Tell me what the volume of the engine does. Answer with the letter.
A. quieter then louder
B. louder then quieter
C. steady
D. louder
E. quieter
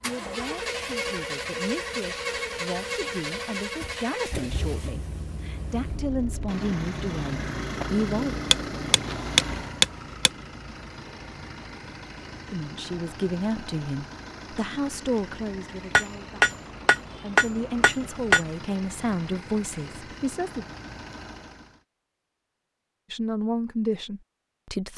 E.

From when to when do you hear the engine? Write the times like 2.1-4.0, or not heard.
0.0-21.8.